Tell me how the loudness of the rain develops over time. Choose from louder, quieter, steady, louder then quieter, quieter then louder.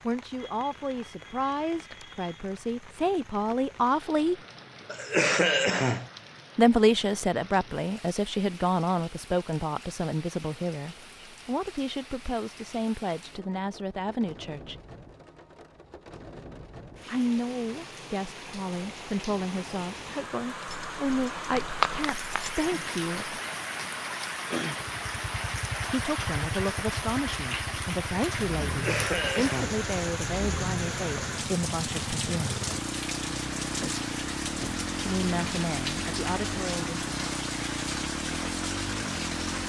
louder.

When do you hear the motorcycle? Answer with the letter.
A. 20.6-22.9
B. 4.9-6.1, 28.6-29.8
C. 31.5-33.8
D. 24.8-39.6
D.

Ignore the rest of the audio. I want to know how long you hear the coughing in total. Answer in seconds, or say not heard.
2 s.